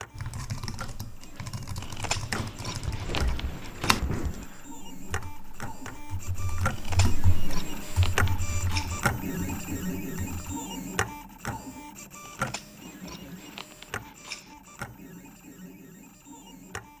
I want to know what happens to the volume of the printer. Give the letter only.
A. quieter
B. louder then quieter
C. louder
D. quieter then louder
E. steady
B.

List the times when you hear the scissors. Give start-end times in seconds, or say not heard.
1.8-4.0, 6.7-9.0, 12.2-14.6.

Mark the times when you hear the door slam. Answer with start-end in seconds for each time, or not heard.
2.9-4.5.